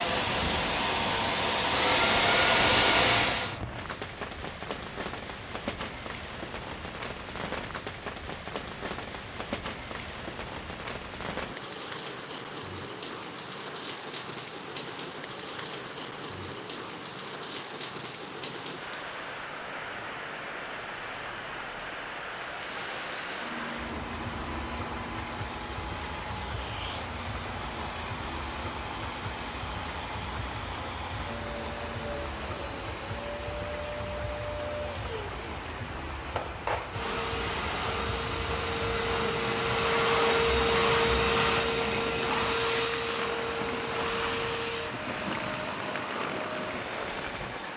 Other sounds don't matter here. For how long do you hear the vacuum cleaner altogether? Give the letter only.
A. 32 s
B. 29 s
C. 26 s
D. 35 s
B.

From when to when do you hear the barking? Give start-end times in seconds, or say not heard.
not heard.